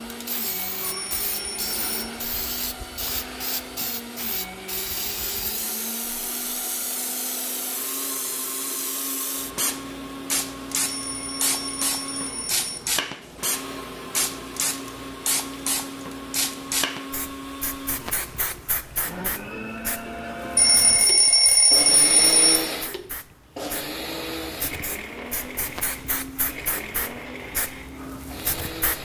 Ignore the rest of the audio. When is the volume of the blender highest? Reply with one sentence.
The volume of the blender peaks at 22 seconds.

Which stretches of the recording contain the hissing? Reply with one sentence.
You can hear the hissing from 0.0 to 28.9 s.